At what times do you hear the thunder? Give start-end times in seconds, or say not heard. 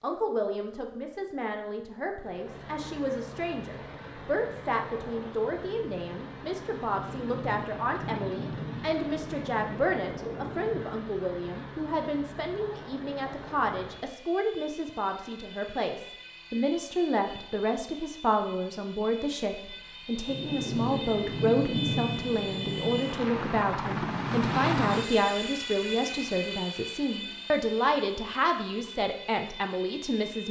6.9-10.9, 20.2-23.1.